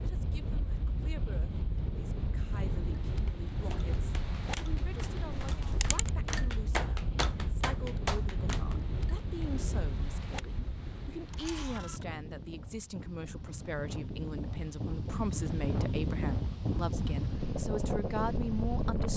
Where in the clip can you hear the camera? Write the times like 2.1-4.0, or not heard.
5.5-6.1, 11.3-12.1.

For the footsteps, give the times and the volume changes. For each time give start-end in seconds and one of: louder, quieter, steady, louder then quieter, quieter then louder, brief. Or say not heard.
not heard.